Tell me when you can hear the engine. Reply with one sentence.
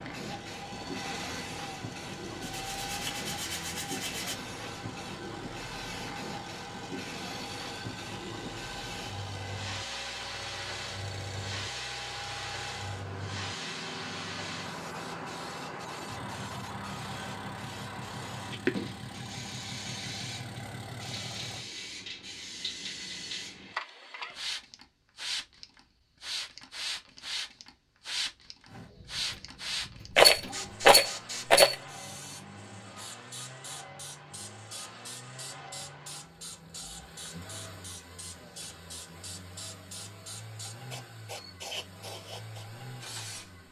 The engine can be heard from 0.0 to 21.6 s and from 28.6 to 43.6 s.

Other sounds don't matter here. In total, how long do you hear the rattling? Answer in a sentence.
The rattling can be heard for 2 seconds in total.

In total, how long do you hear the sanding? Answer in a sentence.
The sanding can be heard for 2 seconds in total.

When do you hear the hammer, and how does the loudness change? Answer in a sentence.
The hammer can't be heard in this clip.